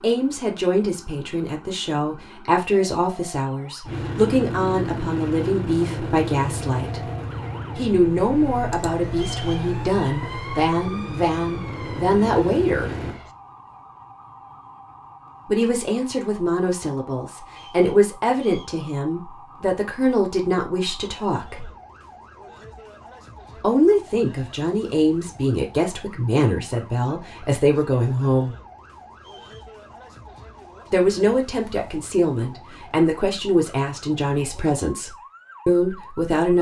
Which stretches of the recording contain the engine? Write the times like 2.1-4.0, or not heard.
3.8-13.2.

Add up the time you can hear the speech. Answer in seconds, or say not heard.
29 s.